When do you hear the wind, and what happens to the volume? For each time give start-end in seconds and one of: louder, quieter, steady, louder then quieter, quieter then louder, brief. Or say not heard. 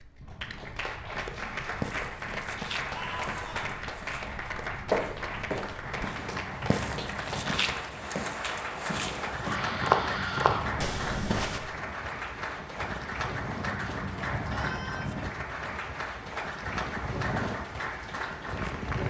0.0-19.0 louder.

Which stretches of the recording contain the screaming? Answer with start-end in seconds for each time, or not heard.
2.9-3.8, 9.4-10.7, 14.5-15.1.